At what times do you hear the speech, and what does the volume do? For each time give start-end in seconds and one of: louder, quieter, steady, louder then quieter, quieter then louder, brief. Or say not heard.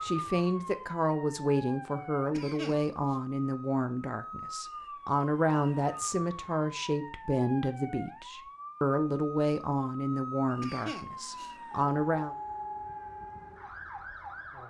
0.0-12.3 steady.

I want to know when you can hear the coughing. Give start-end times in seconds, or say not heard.
2.3-3.1, 10.6-11.6.